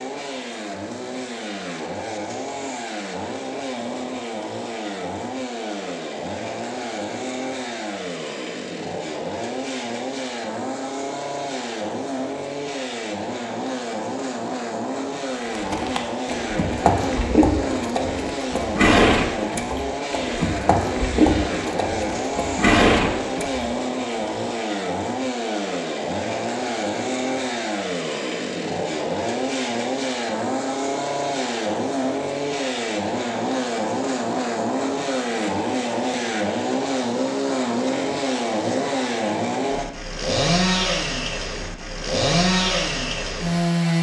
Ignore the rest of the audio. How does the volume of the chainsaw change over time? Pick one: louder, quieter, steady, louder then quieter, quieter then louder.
louder.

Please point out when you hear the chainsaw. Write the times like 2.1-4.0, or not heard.
0.0-43.9.